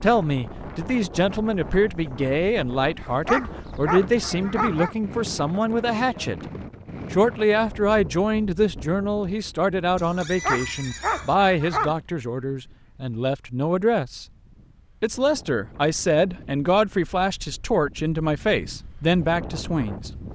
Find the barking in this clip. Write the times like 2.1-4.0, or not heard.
3.2-5.0, 10.4-11.9.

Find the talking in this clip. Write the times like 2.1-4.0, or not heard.
0.0-6.4, 7.1-14.2, 15.0-20.1.